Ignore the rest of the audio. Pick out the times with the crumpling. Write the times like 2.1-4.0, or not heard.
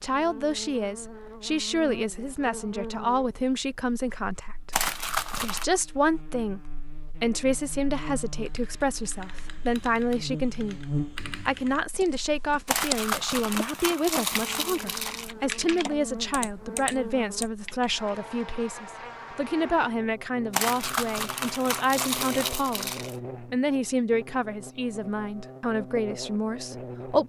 4.7-5.7, 12.7-15.3, 20.5-23.1.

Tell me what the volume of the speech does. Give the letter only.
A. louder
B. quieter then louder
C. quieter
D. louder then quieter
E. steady
E.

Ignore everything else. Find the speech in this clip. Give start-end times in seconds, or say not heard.
0.0-10.8, 11.4-27.2.